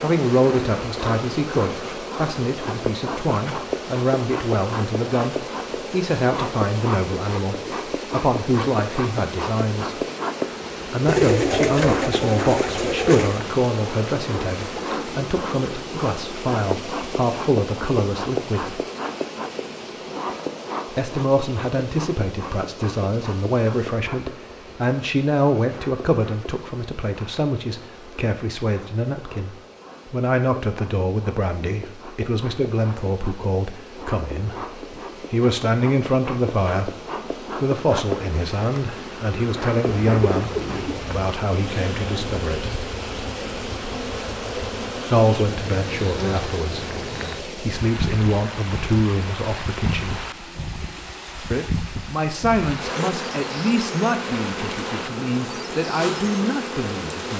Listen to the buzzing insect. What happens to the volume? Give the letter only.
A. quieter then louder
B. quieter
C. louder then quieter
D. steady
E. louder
A.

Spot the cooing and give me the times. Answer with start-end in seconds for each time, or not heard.
11.1-13.4, 39.9-41.2.